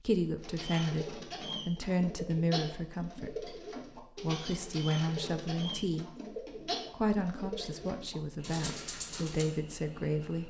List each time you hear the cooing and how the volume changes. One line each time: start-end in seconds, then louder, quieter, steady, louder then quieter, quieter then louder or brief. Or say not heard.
0.3-9.4 steady.